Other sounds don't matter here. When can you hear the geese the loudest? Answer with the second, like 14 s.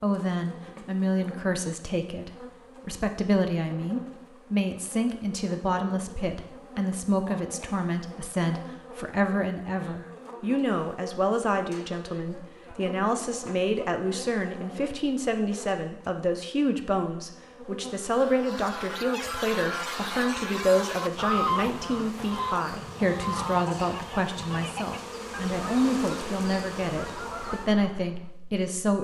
21 s.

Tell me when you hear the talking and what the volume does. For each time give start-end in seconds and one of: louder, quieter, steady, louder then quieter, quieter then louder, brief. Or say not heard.
0.0-29.0 steady.